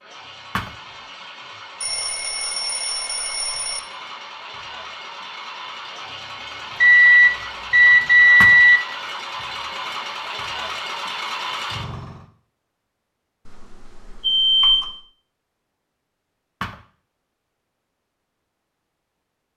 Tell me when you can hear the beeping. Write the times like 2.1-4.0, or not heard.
1.8-3.8, 6.8-8.8, 13.4-14.9.